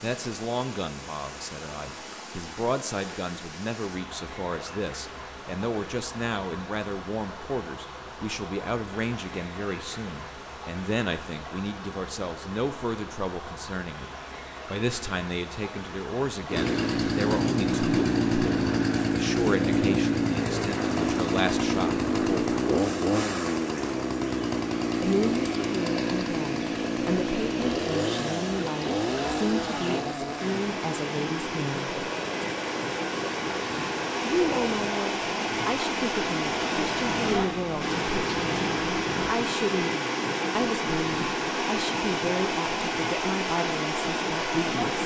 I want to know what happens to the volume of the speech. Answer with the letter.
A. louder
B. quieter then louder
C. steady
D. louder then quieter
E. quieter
C.